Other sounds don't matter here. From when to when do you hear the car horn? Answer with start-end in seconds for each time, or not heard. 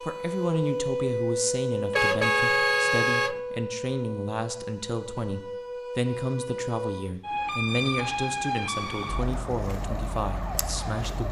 1.9-3.4.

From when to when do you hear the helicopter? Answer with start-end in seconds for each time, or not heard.
not heard.